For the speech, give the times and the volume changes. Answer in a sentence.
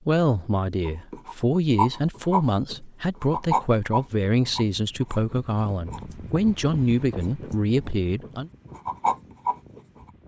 You can hear the speech from 0.1 to 8.5 s, at a steady volume.